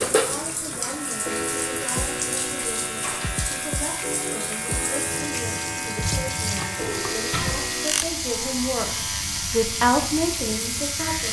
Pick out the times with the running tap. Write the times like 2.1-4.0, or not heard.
0.0-11.2.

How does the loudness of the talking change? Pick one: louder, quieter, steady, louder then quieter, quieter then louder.
louder.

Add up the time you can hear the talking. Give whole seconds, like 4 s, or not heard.
11 s.